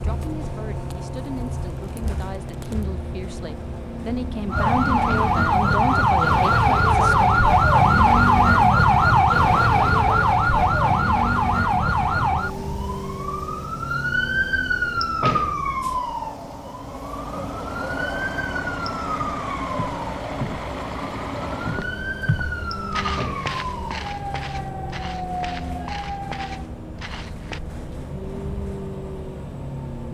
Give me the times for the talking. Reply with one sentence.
You can hear the talking from 0.0 to 7.2 s.